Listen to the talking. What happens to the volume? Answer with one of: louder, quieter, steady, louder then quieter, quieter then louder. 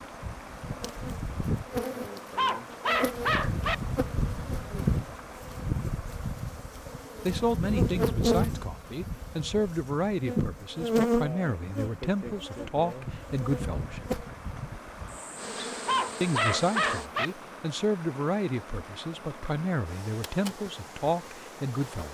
steady.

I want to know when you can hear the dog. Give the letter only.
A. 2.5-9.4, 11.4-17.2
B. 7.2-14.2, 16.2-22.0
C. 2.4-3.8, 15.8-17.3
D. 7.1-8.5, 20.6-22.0
C.